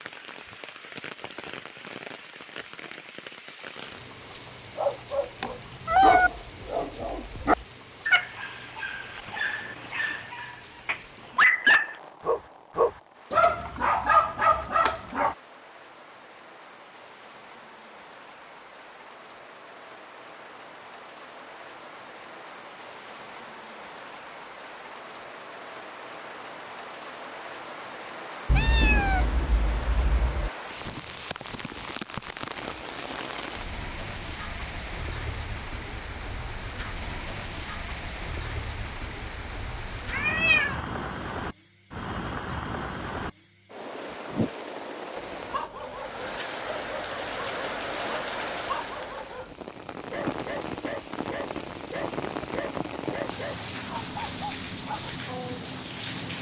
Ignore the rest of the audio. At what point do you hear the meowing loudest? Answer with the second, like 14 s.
6 s.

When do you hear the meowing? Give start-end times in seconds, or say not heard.
5.4-6.3, 28.4-30.5, 40.1-40.8.